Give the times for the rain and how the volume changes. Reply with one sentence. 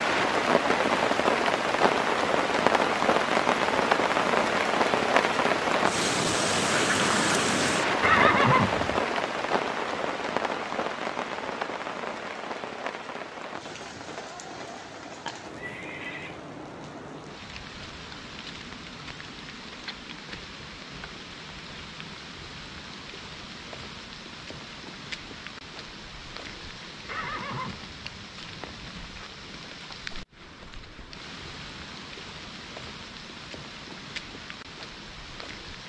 You can hear the rain from 0.0 to 35.8 s, getting quieter.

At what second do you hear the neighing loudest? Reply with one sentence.
The volume of the neighing peaks at 8 seconds.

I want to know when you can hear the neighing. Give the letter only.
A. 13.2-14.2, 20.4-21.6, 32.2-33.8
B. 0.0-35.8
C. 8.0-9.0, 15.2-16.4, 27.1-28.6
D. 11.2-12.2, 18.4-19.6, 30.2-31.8
C.